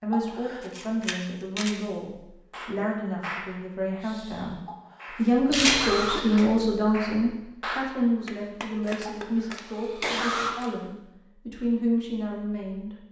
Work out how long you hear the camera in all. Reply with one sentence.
You can hear the camera for 4 seconds altogether.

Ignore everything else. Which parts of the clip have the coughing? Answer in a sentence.
You can hear the coughing from 0.1 to 0.7 s, from 4.7 to 6.5 s and from 9.1 to 10.6 s.